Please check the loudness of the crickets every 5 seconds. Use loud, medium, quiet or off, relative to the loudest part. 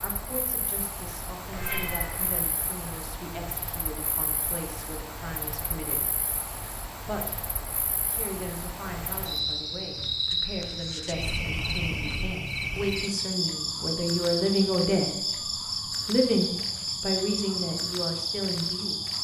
medium, medium, loud, loud.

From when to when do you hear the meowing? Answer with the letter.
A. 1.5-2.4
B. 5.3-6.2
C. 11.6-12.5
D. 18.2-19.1
A.